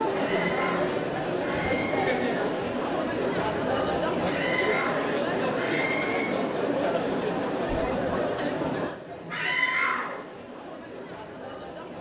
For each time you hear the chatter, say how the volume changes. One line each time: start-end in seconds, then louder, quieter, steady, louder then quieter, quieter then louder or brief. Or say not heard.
0.0-11.9 quieter.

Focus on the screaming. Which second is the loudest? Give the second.
10 s.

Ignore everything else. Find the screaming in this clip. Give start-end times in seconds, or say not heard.
0.1-2.1, 4.2-6.2, 9.3-10.2.